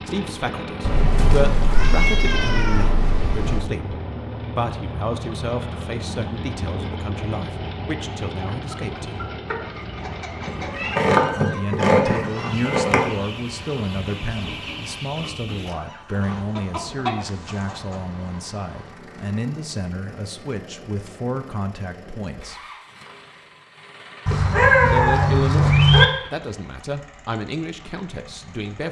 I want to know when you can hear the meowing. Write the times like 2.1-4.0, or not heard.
0.8-3.6, 10.4-13.1, 24.2-26.1.